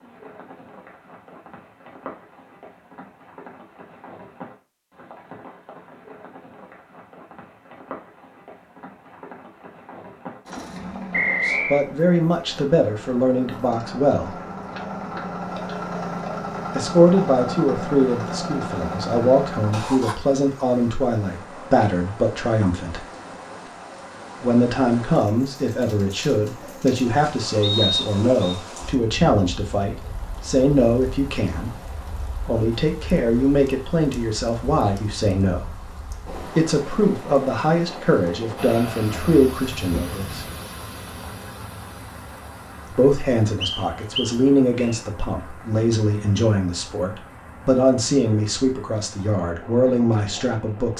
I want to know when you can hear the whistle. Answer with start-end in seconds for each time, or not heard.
11.1-11.8, 27.6-28.6, 43.6-45.0.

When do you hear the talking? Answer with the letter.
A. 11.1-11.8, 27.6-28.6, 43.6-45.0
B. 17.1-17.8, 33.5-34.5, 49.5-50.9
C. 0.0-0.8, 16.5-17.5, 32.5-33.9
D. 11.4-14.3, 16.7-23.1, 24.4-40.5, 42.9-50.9
D.